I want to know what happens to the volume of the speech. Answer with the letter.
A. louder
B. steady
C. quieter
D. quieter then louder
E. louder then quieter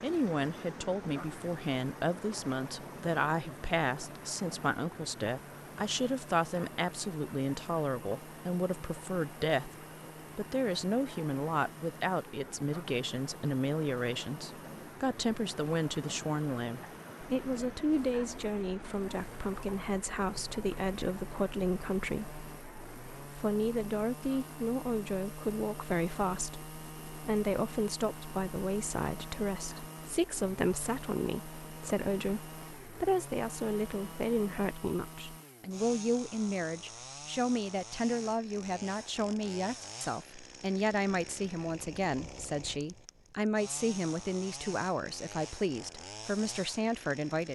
B.